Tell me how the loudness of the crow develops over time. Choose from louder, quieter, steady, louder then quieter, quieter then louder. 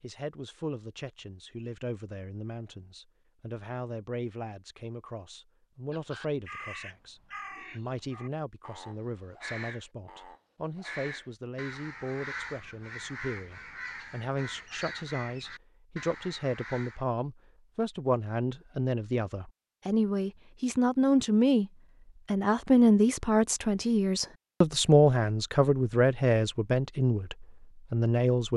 steady.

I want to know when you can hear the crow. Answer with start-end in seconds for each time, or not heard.
5.9-17.1.